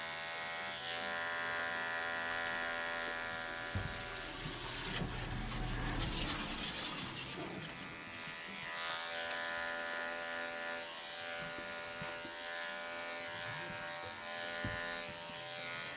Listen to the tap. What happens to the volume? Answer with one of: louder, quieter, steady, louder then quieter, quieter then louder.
louder then quieter.